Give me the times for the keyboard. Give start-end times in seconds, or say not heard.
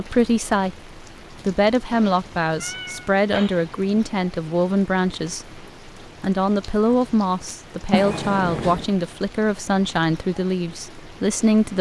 not heard.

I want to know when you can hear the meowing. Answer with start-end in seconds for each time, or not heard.
1.9-3.7, 7.9-8.8.